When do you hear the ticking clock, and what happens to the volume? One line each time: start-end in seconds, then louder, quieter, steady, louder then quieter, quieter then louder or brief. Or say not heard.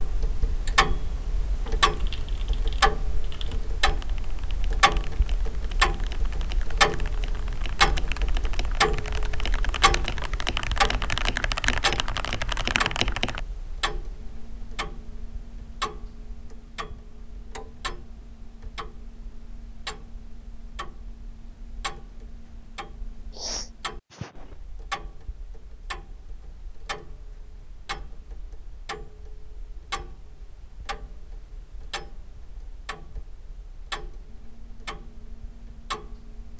0.0-36.5 quieter.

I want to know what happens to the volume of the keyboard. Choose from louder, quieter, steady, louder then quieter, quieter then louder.
louder.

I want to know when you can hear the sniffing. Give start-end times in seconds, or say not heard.
23.3-24.6.